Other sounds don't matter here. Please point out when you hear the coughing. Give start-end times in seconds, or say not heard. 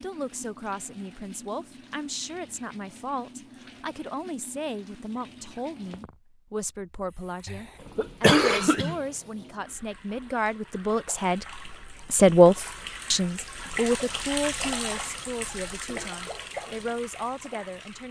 7.5-8.9.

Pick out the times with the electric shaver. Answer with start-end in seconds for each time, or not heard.
not heard.